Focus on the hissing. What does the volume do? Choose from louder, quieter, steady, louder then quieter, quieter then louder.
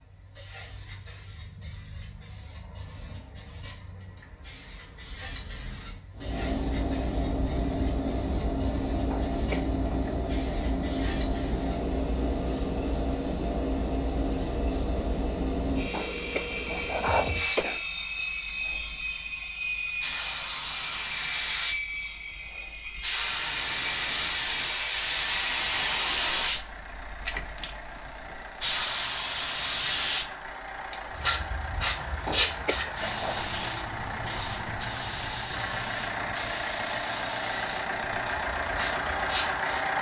louder then quieter.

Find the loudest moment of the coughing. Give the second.
17 s.